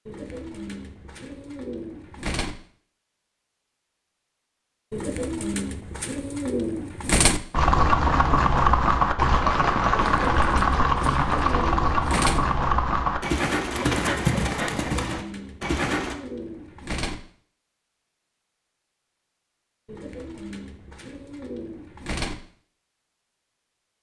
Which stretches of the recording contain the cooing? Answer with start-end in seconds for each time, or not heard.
0.1-2.5, 4.9-7.4, 10.2-12.4, 14.8-17.1, 19.9-22.4.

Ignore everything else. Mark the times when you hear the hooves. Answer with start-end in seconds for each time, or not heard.
7.5-16.1.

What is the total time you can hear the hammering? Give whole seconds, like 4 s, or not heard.
not heard.